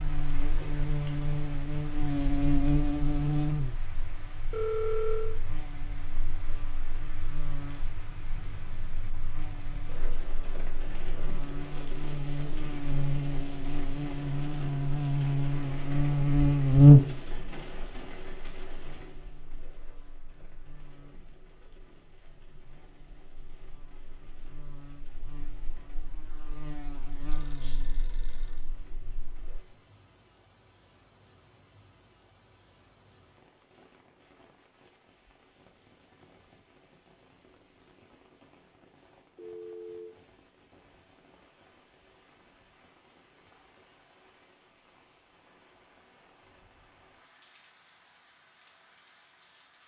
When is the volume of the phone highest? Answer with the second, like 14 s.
5 s.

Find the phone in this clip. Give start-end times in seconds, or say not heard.
4.5-5.3, 27.3-28.6, 39.4-40.1.